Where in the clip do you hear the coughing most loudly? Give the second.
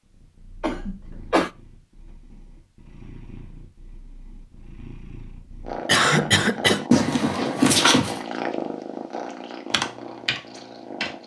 6 s.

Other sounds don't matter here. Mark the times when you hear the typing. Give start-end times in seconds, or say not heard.
9.7-11.2.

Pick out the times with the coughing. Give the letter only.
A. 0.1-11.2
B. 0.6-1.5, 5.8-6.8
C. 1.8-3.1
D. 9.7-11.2
B.